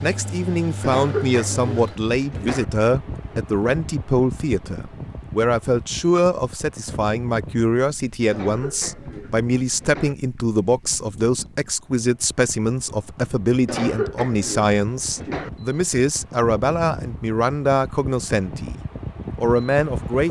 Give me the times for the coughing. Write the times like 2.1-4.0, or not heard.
0.8-2.6, 8.3-10.2, 13.7-15.5.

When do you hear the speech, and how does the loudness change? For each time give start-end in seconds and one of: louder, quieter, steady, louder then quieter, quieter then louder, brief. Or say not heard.
0.0-18.8 steady
19.4-20.2 brief.